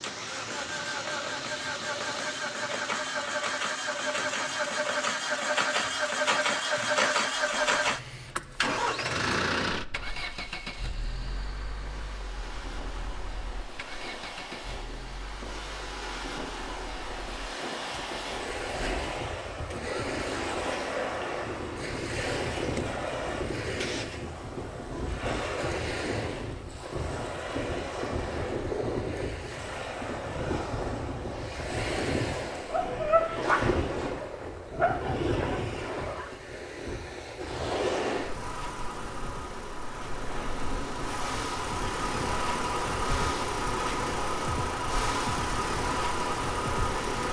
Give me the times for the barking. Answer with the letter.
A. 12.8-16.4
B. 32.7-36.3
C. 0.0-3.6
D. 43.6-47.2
B.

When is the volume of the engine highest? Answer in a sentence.
The volume of the engine peaks at 7 seconds.